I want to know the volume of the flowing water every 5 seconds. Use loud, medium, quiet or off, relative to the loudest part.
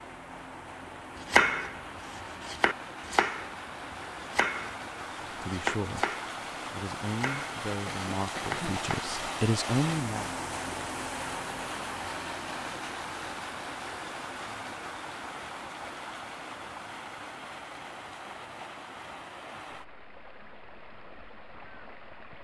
medium, loud, loud, medium, quiet.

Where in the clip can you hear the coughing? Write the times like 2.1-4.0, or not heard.
7.8-8.8.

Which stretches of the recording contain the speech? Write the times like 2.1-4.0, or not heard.
5.3-6.0, 6.7-10.3.